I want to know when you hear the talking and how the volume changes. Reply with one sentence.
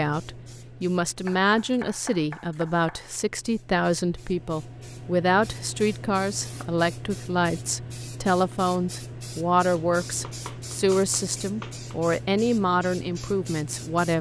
You can hear the talking from 0.0 to 14.1 s, at a steady volume.